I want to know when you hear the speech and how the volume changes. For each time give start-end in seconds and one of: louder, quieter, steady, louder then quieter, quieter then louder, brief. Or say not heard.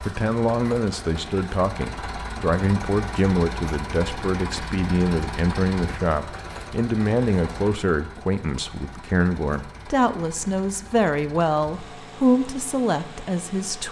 0.0-13.8 steady.